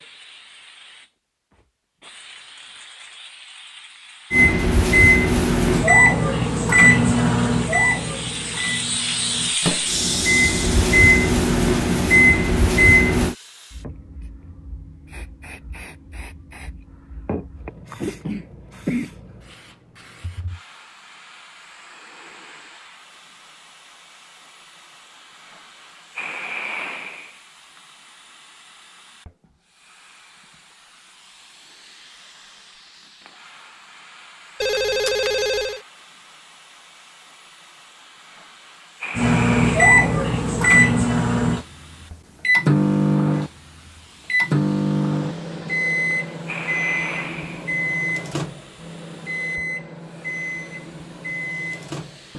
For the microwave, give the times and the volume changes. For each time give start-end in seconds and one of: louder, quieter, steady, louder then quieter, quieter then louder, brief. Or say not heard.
4.3-13.3 quieter then louder
39.1-52.3 quieter.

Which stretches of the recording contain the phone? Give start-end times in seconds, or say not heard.
34.6-35.8.